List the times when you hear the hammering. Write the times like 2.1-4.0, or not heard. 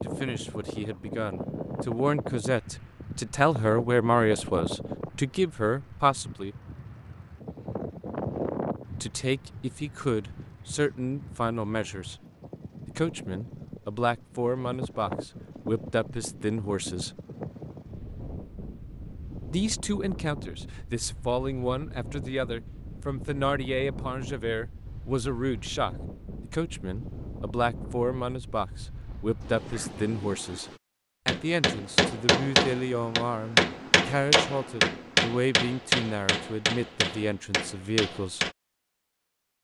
31.2-38.5.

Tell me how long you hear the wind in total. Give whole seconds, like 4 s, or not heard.
31 s.